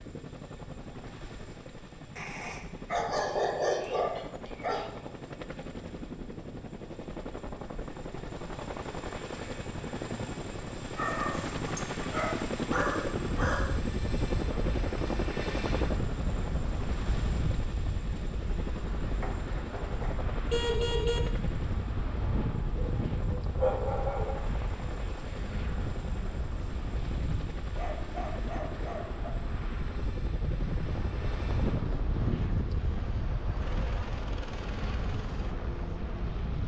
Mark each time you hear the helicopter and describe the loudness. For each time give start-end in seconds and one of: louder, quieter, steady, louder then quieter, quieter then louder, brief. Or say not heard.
0.0-36.6 louder then quieter.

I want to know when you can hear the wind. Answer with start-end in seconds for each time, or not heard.
13.1-36.6.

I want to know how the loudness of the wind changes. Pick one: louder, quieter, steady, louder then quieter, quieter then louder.
steady.